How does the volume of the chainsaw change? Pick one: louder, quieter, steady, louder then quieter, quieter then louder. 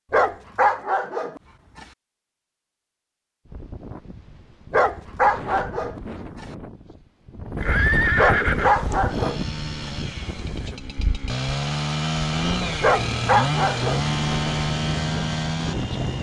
louder.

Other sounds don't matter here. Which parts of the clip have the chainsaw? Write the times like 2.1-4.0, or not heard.
8.5-16.1.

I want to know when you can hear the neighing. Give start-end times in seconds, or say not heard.
7.5-8.9.